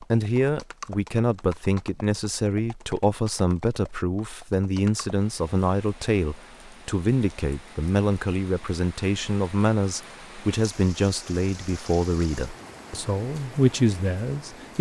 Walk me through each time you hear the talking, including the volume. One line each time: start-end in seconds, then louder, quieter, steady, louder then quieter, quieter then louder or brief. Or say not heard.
0.0-14.7 steady.